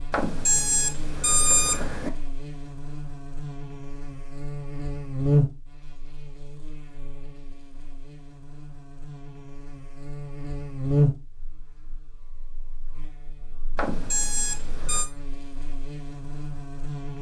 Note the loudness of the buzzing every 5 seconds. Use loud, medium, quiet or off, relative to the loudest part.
medium, loud, loud, medium.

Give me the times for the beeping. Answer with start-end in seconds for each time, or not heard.
0.1-2.1, 13.8-15.1.